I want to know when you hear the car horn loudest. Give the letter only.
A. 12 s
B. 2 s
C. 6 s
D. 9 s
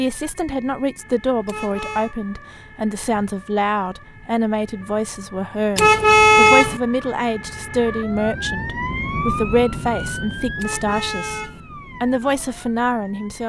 C.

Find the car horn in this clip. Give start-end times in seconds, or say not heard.
1.4-2.1, 5.8-6.8, 10.6-11.6.